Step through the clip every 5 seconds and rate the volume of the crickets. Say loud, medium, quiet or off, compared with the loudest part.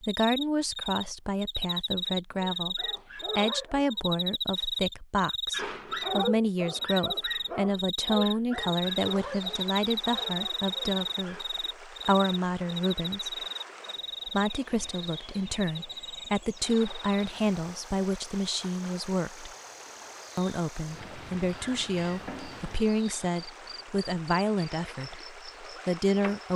loud, loud, loud, quiet, quiet, quiet.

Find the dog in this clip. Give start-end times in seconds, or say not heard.
2.5-4.0, 5.5-11.4.